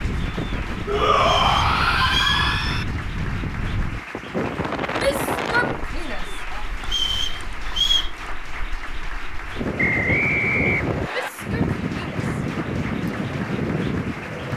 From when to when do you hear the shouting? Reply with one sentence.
The shouting can be heard from 0.8 to 2.9 s, from 4.9 to 6.7 s and from 11.1 to 12.2 s.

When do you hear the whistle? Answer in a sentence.
You can hear the whistle from 1.2 to 2.4 s, from 6.8 to 8.1 s and from 9.8 to 11.3 s.